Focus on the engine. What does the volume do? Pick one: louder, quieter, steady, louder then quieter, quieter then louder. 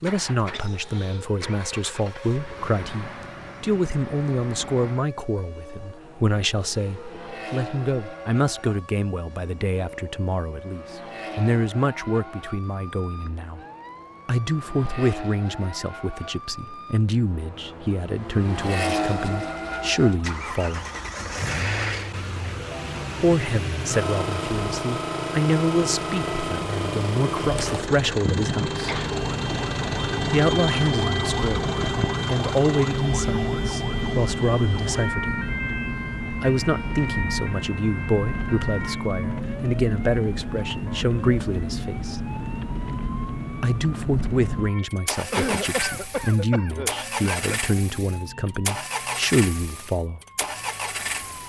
louder.